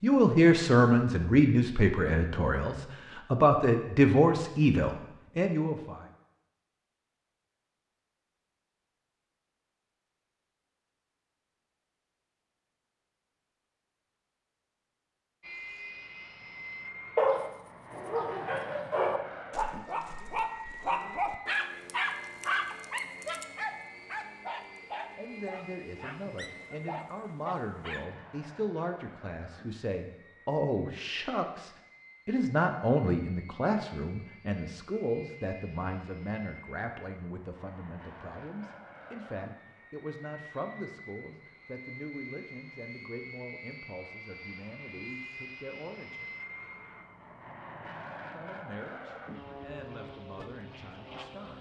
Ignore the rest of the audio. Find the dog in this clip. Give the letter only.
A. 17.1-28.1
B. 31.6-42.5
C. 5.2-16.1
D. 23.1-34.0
A.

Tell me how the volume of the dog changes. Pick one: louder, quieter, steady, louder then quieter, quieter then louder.
quieter.